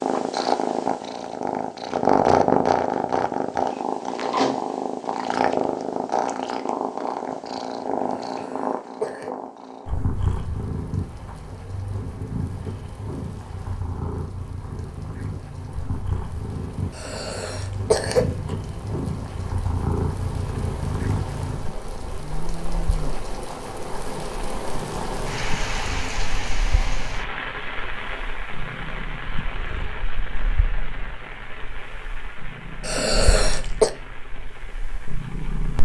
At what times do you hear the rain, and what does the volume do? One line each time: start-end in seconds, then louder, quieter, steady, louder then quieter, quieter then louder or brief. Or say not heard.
10.1-35.8 louder then quieter.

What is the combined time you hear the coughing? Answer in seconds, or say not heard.
4 s.